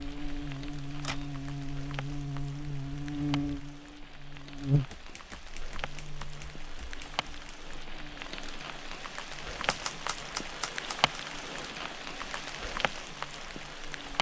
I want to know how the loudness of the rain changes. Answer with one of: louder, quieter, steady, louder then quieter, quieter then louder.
louder.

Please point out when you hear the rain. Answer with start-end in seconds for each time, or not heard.
0.0-14.1.